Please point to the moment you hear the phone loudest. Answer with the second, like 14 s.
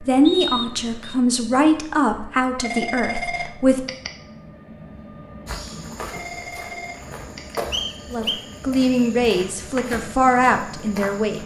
3 s.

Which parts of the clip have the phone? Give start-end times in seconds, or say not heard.
2.5-4.1, 6.0-7.6.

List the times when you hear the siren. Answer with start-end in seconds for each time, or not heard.
not heard.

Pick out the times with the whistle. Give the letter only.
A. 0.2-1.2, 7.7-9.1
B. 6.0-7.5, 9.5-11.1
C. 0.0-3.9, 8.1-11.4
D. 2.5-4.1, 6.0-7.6
A.